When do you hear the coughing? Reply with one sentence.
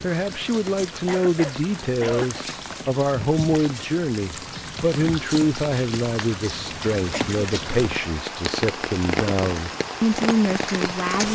You can hear the coughing from 1.1 to 2.5 s and from 7.1 to 7.8 s.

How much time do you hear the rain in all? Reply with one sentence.
You can hear the rain for 11 seconds altogether.